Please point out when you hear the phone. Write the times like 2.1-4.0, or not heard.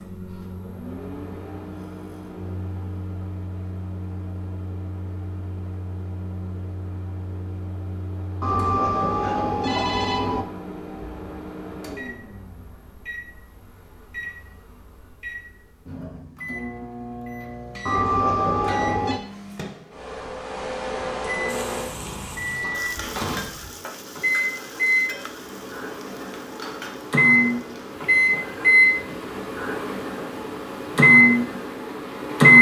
8.4-10.4, 17.9-19.2.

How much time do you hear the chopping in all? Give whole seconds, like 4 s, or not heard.
not heard.